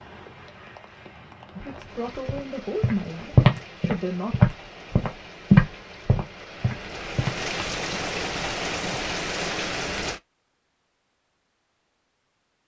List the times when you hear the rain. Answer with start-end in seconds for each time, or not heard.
0.0-10.2.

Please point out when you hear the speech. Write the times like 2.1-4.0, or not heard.
1.6-4.5.